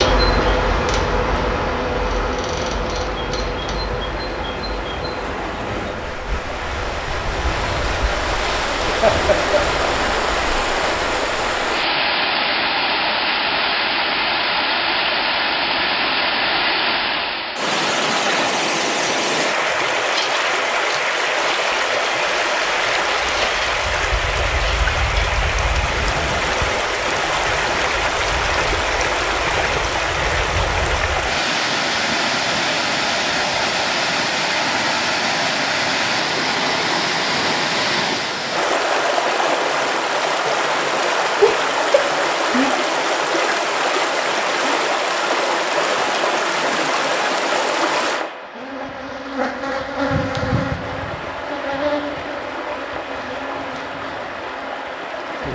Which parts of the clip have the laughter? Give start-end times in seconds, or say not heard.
9.0-9.8, 41.4-42.7.